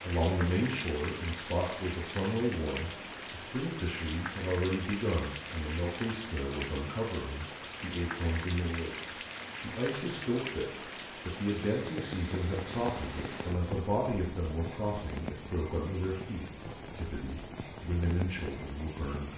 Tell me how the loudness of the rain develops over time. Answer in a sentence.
The loudness of the rain stays about the same.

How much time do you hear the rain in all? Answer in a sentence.
The rain can be heard for 19 seconds in total.